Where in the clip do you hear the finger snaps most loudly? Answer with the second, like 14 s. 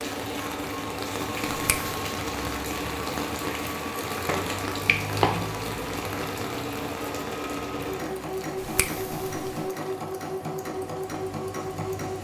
5 s.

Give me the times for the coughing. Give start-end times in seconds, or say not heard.
not heard.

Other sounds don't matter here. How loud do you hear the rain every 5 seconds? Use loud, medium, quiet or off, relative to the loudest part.
loud, loud, medium.